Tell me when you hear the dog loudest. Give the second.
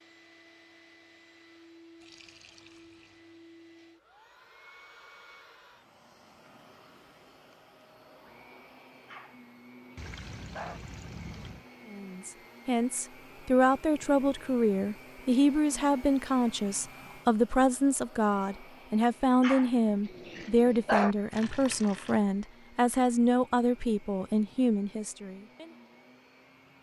21 s.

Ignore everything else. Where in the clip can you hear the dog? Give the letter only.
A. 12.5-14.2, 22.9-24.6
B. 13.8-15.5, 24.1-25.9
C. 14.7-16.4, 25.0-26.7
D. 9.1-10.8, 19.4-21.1
D.